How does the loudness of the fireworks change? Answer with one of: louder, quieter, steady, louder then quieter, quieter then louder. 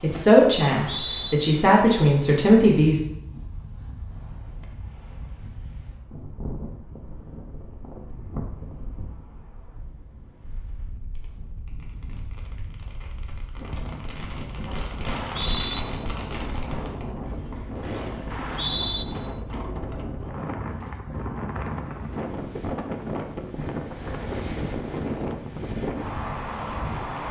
louder then quieter.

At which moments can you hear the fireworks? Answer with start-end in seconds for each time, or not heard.
10.3-19.4.